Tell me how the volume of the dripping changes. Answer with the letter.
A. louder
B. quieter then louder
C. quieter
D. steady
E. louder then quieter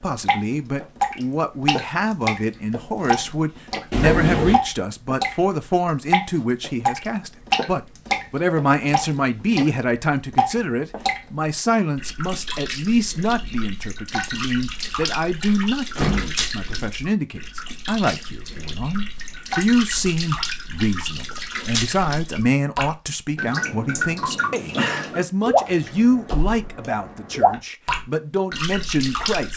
B.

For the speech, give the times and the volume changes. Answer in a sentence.
You can hear the speech from 0.0 to 29.5 s, at a steady volume.